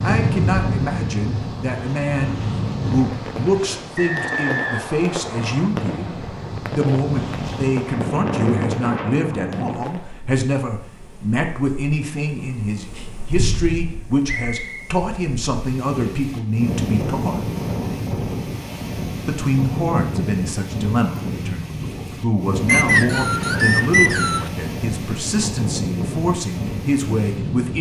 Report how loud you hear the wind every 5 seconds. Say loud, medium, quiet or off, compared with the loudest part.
loud, loud, medium, loud, loud, loud.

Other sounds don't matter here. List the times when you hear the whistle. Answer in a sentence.
The whistle can be heard from 4.0 to 5.7 s, from 14.5 to 14.9 s and from 22.6 to 24.5 s.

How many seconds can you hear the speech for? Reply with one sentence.
You can hear the speech for 26 seconds altogether.